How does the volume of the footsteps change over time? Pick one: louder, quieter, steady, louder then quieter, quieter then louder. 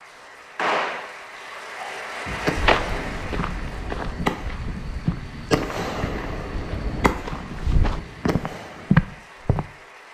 quieter then louder.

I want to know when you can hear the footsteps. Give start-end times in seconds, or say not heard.
2.5-9.7.